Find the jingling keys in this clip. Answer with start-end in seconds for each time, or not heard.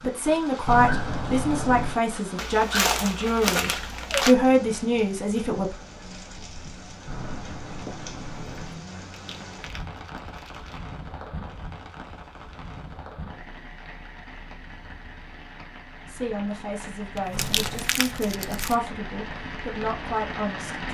0.7-2.0, 7.0-8.8, 17.3-17.9.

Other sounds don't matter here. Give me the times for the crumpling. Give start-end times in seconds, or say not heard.
2.4-4.3, 8.9-10.8, 17.1-18.8.